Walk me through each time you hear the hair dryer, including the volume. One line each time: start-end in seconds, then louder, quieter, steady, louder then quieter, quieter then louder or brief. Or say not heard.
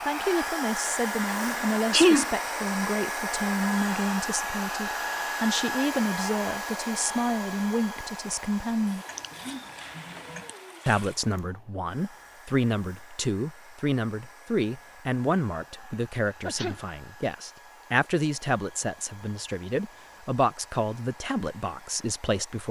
0.0-22.6 quieter.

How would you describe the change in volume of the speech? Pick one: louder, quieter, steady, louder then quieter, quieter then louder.
steady.